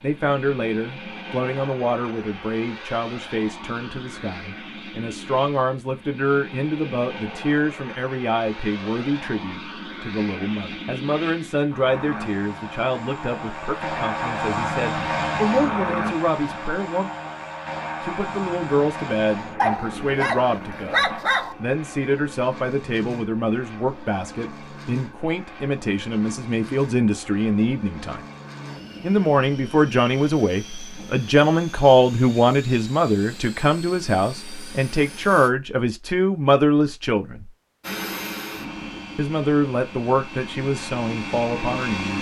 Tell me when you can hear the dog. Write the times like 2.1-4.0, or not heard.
19.6-21.6.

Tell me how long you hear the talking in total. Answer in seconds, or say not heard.
39 s.